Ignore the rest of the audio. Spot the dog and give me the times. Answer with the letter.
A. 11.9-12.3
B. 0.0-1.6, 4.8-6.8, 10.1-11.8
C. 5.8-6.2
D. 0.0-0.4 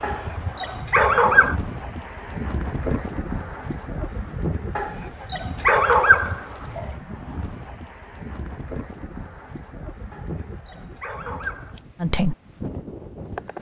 B.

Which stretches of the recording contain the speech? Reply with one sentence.
The speech can be heard from 11.9 to 12.3 s.